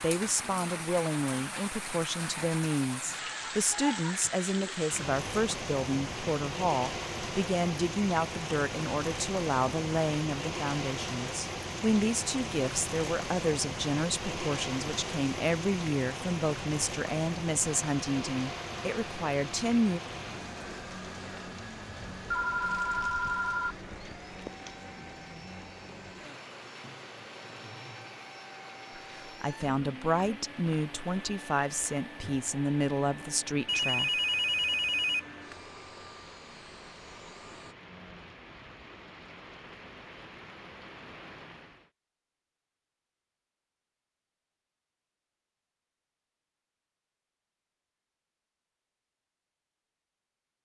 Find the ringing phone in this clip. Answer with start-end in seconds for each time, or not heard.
22.2-23.8, 33.6-35.5.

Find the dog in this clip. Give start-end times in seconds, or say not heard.
not heard.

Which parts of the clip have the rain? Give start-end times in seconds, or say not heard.
0.0-41.9.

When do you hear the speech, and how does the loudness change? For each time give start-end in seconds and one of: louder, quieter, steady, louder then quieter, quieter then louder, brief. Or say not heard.
0.0-20.0 steady
29.2-34.2 steady.